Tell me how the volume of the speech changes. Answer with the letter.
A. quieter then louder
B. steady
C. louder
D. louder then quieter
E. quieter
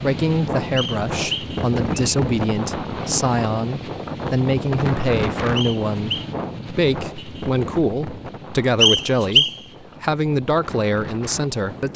B.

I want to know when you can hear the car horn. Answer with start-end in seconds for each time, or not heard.
not heard.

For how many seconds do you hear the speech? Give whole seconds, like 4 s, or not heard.
12 s.